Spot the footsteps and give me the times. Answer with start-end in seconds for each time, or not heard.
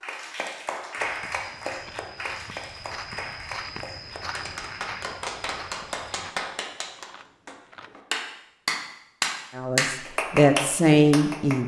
0.9-6.3.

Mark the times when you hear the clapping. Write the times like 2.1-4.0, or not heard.
0.0-11.6.